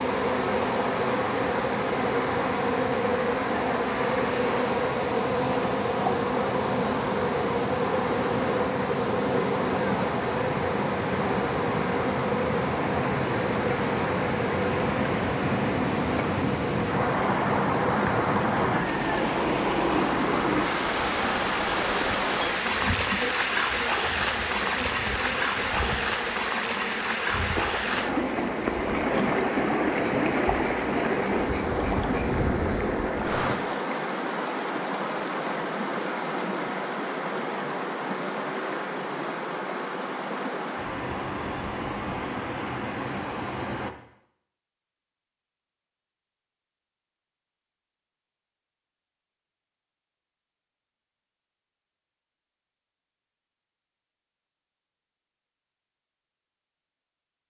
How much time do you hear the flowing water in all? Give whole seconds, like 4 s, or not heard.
44 s.